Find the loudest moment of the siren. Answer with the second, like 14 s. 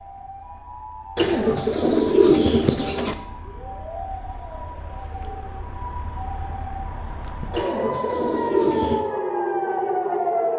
10 s.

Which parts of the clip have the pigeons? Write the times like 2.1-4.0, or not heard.
1.1-3.1, 7.5-9.1.